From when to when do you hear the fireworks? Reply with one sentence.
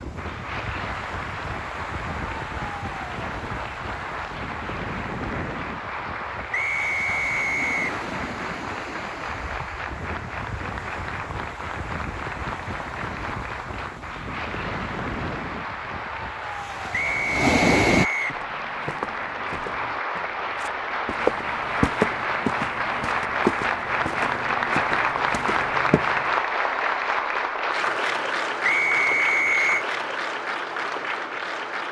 You can't hear the fireworks here.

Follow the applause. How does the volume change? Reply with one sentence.
The loudness of the applause goes up.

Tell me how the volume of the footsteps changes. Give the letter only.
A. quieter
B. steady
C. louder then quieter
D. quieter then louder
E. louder
C.